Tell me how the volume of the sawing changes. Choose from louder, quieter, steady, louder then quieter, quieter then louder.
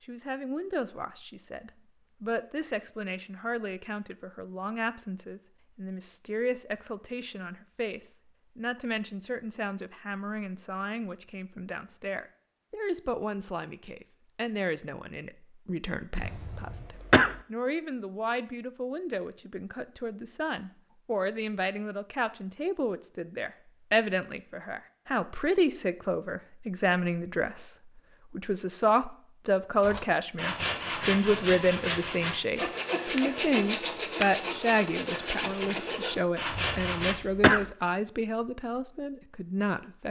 steady.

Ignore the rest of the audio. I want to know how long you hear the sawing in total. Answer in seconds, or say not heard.
7 s.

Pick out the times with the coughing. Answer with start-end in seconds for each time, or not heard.
16.2-17.4, 36.5-37.6.